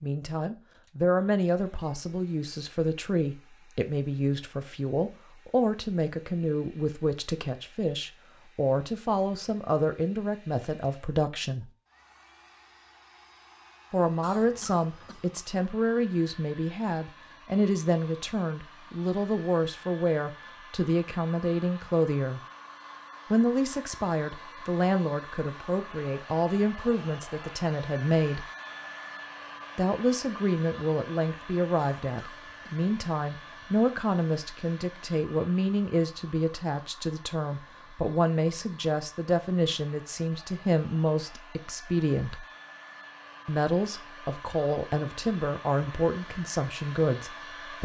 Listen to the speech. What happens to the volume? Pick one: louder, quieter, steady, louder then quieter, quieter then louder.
steady.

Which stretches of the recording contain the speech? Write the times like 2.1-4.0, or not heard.
0.0-11.7, 13.9-22.4, 23.3-28.4, 29.8-42.5, 43.5-47.8.